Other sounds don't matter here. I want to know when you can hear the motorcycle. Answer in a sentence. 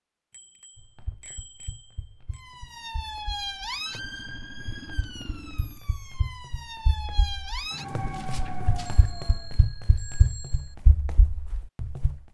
You can hear the motorcycle from 4.0 to 5.8 s.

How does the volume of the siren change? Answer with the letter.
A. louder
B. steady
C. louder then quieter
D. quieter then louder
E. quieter
D.